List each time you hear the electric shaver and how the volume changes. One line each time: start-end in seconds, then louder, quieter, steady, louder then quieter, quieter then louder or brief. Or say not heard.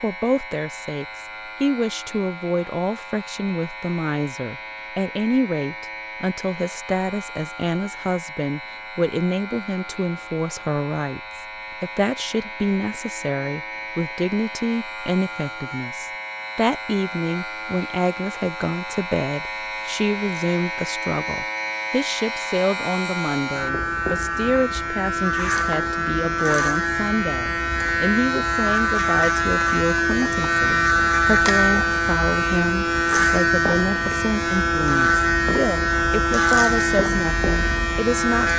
0.0-38.5 louder.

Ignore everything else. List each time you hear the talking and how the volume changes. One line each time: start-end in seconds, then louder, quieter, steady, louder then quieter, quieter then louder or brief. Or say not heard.
0.0-38.5 steady.